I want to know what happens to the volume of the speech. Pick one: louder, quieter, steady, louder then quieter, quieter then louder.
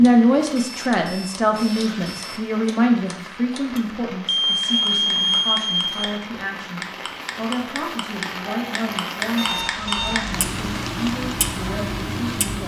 quieter.